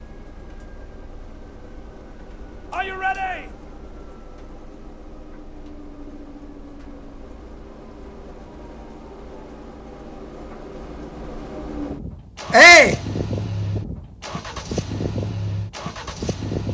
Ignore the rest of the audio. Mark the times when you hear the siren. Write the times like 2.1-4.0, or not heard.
not heard.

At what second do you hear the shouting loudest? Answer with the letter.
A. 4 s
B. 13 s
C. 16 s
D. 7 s
B.